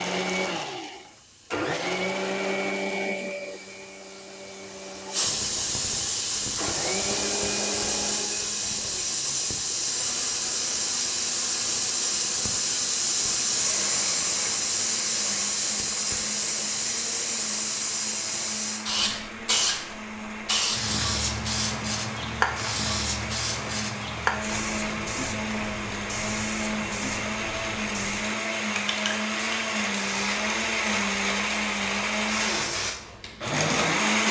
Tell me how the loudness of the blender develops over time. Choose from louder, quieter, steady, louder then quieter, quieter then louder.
quieter then louder.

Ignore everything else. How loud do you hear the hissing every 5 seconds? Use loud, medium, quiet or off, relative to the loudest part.
quiet, loud, loud, loud, loud, medium, medium.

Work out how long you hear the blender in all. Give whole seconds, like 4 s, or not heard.
34 s.